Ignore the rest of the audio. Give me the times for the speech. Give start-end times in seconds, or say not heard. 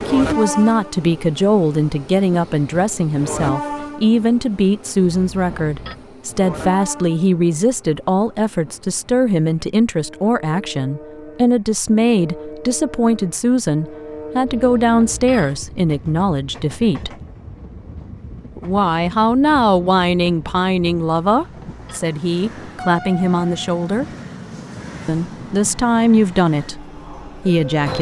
0.1-17.1, 18.6-24.1, 25.1-27.9.